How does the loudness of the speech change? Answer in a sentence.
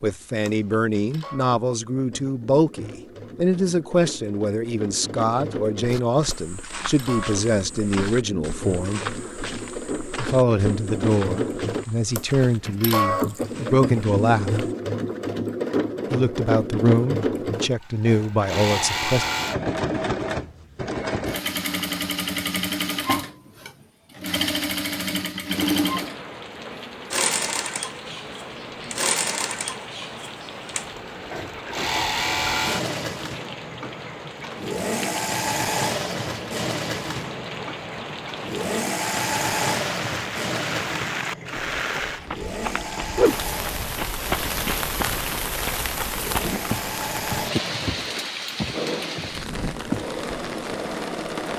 The volume of the speech stays about the same.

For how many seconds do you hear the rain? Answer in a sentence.
You can hear the rain for 26 seconds altogether.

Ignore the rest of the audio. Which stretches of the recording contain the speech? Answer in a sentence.
You can hear the speech from 0.0 to 9.0 s, from 10.2 to 14.6 s and from 16.1 to 19.2 s.